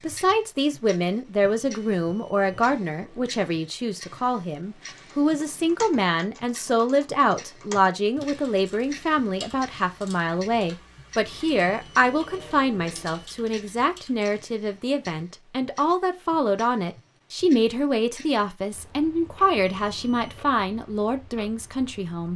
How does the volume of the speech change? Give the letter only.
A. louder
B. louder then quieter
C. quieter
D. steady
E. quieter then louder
D.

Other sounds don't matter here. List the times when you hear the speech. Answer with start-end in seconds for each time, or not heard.
0.0-22.3.